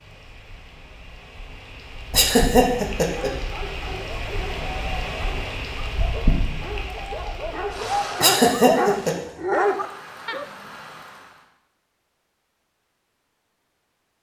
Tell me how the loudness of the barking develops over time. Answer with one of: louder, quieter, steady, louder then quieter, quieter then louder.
louder.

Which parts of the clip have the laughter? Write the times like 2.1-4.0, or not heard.
2.1-3.3, 8.2-9.2.